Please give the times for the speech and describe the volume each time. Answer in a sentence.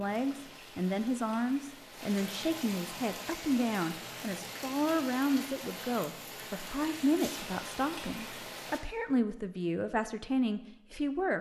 The speech can be heard from 0.0 to 11.3 s, at a steady volume.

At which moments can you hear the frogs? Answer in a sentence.
You can't hear the frogs here.